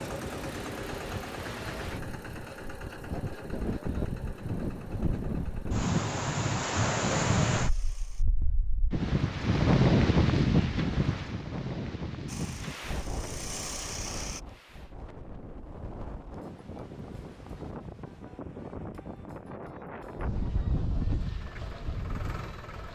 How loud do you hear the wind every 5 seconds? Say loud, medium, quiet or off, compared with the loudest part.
medium, loud, loud, quiet, medium.